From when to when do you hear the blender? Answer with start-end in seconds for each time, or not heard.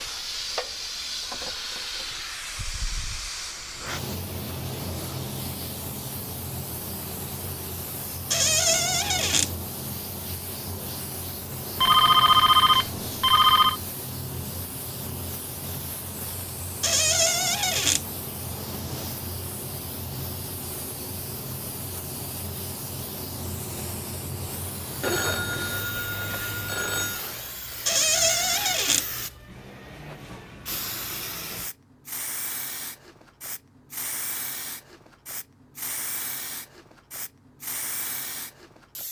not heard.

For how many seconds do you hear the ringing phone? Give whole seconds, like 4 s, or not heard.
4 s.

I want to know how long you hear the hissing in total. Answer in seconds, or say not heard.
39 s.